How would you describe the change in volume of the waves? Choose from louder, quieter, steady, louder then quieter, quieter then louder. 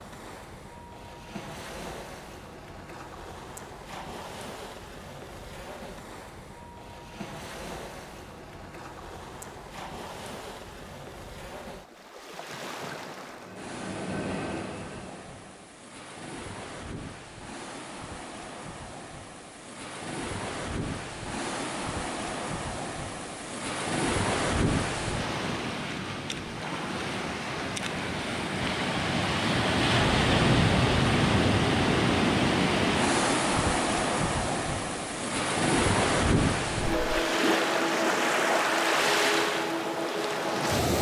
louder.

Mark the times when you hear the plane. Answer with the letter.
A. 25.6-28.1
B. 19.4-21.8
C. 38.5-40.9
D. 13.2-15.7
D.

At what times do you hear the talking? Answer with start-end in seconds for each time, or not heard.
not heard.